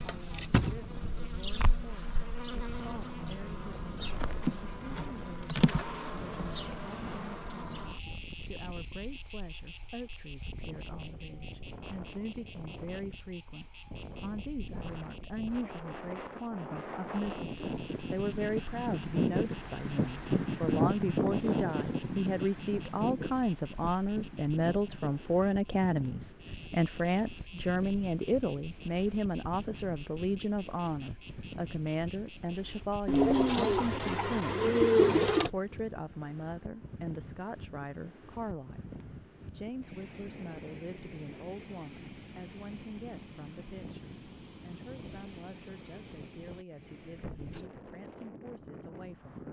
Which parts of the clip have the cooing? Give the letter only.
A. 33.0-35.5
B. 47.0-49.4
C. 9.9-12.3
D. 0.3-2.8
A.